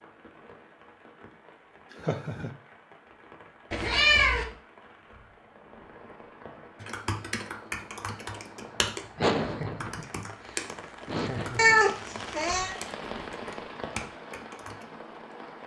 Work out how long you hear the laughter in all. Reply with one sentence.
The laughter can be heard for 3 seconds in total.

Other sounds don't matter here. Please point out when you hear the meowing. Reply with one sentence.
The meowing can be heard from 3.7 to 4.5 s and from 11.6 to 12.8 s.